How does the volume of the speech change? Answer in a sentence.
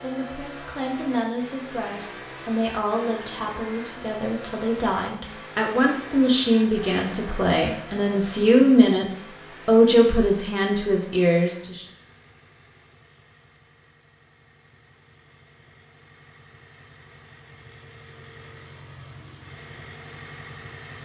The volume of the speech goes up.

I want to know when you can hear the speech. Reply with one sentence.
The speech can be heard from 0.0 to 11.8 s.